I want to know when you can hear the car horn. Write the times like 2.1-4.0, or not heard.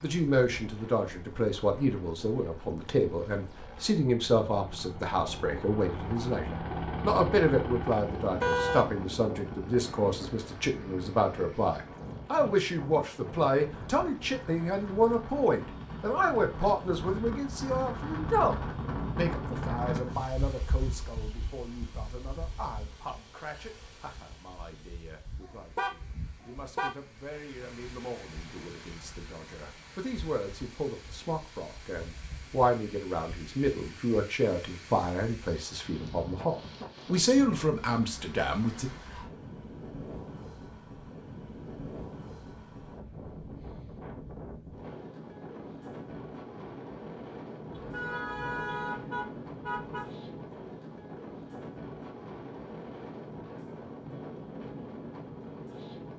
8.4-9.1, 25.4-26.9, 47.7-50.1.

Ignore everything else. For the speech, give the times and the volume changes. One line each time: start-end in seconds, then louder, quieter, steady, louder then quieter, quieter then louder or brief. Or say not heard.
0.0-38.9 quieter then louder.